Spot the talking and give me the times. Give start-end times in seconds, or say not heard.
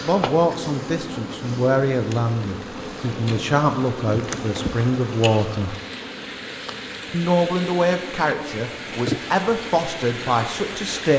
0.1-5.8, 7.1-11.1.